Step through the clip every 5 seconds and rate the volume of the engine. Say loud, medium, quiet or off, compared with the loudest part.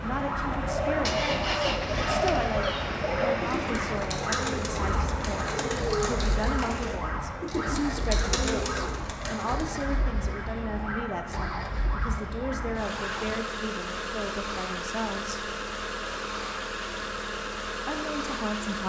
loud, medium, loud, loud.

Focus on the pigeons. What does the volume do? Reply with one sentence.
The volume of the pigeons stays about the same.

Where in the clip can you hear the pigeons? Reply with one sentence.
You can hear the pigeons from 0.6 to 9.7 s.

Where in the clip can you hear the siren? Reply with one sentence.
You can hear the siren from 0.0 to 13.4 s.